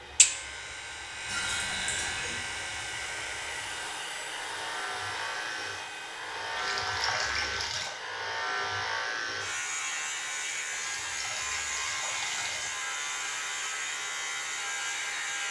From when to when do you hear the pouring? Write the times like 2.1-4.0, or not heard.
1.2-2.4, 6.5-8.0, 10.7-12.7.